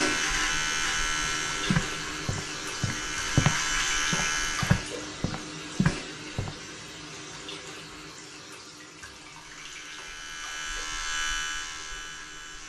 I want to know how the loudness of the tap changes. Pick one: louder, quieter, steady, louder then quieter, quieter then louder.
quieter.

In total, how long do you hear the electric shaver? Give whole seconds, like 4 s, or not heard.
8 s.